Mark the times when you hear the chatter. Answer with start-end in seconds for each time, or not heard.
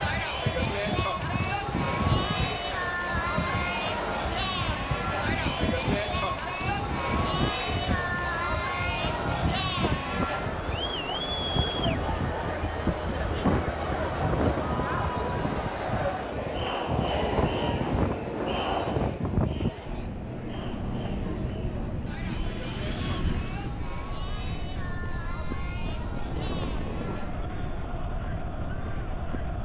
0.0-29.6.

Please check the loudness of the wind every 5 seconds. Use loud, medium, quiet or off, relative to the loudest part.
loud, loud, loud, loud, loud, medium.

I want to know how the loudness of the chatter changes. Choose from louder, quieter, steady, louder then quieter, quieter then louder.
quieter.